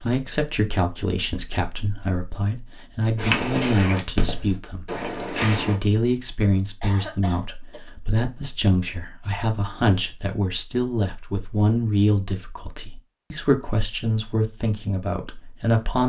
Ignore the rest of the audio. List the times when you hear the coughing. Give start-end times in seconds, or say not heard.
6.8-7.9.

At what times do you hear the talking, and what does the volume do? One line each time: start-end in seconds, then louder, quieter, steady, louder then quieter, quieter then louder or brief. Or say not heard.
0.0-16.0 steady.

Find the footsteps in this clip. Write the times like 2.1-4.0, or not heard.
3.1-5.8.